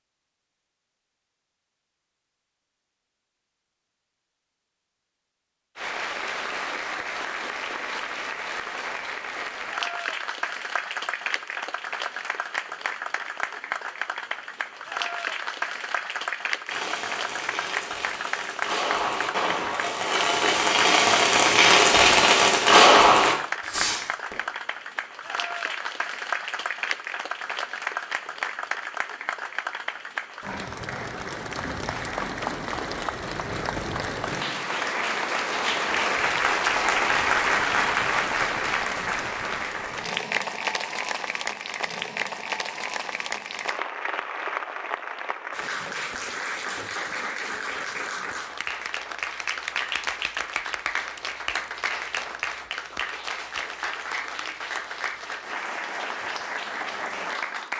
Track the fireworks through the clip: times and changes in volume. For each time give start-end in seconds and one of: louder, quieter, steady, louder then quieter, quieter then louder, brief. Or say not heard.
16.6-24.4 louder.